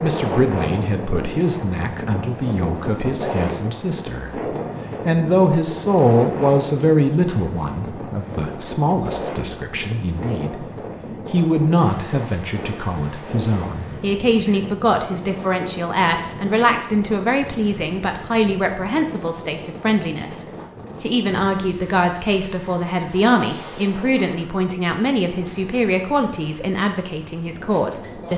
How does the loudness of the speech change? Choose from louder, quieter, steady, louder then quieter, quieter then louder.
steady.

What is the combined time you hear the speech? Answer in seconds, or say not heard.
28 s.